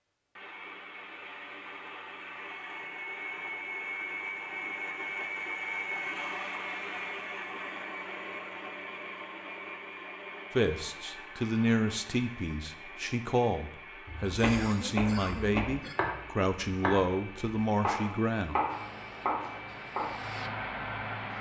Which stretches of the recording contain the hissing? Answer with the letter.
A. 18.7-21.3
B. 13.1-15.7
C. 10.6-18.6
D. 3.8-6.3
A.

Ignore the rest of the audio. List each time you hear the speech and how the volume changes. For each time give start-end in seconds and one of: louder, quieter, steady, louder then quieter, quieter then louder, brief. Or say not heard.
10.6-18.6 steady.